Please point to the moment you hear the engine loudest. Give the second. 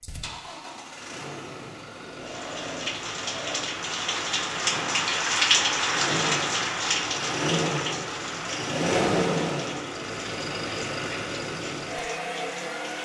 9 s.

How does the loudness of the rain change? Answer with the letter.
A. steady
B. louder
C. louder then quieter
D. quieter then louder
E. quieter
C.